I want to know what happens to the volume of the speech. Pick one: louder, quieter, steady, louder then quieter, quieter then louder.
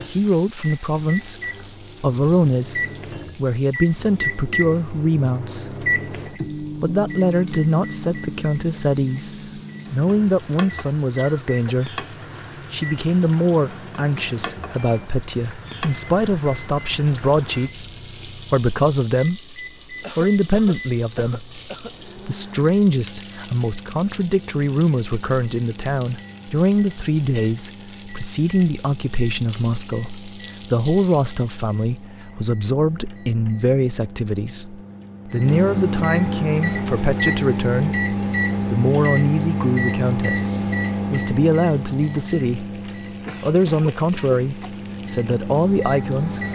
steady.